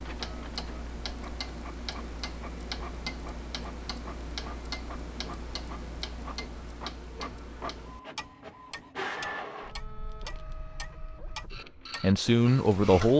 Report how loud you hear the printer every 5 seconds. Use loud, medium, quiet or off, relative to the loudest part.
medium, loud, medium.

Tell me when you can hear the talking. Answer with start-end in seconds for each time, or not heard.
12.0-13.1.